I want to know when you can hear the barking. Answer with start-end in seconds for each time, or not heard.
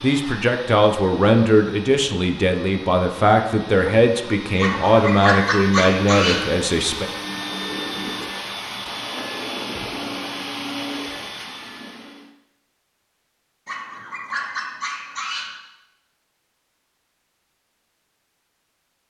4.5-6.5, 13.7-15.6.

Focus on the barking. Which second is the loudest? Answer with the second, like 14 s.
5 s.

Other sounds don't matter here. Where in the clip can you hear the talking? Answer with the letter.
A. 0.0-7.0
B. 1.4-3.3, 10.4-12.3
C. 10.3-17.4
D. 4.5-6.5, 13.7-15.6
A.